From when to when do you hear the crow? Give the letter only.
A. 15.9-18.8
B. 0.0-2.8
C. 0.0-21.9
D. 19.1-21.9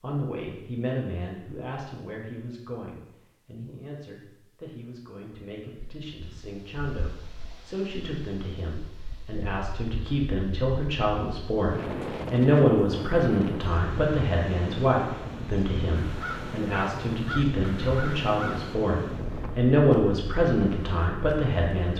A.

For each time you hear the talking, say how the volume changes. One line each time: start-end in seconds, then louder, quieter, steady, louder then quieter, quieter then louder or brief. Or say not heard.
0.0-21.9 louder.